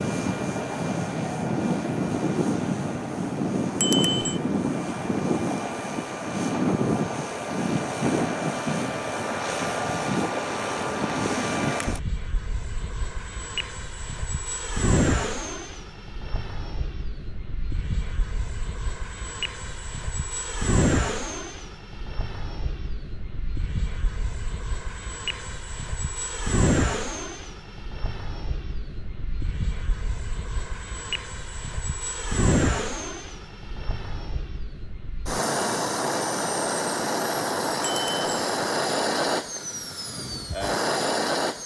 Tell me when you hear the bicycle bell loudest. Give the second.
4 s.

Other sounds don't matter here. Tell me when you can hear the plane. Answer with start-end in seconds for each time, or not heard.
0.0-41.6.